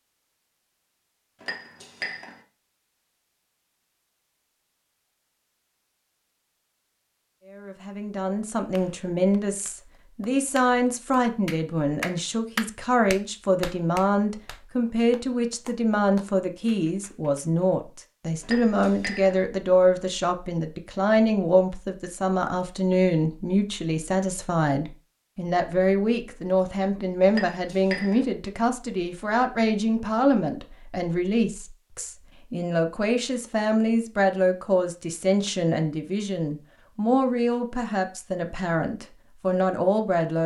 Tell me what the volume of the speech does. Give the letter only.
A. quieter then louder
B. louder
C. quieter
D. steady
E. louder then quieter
D.